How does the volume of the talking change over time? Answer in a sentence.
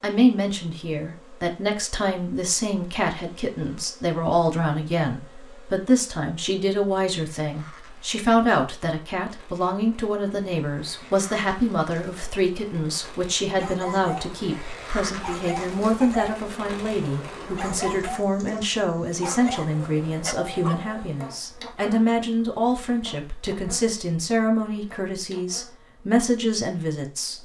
The loudness of the talking stays about the same.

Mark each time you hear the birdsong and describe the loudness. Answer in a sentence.
You can't hear the birdsong here.